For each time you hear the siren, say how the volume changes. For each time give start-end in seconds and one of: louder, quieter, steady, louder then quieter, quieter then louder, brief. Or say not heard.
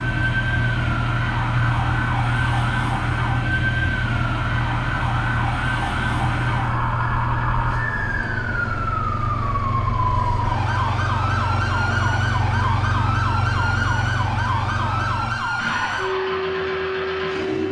0.0-17.6 steady.